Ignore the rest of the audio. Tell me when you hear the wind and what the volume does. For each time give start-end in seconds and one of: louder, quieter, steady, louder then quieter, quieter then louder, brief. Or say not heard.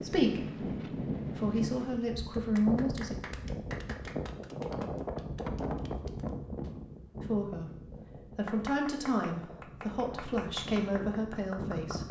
0.0-12.0 quieter.